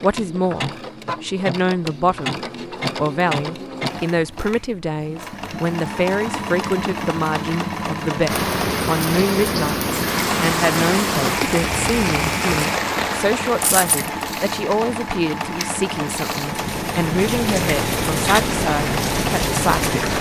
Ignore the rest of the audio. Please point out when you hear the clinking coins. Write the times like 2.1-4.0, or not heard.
13.6-14.1.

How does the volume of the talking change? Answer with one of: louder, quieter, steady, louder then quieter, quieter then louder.
steady.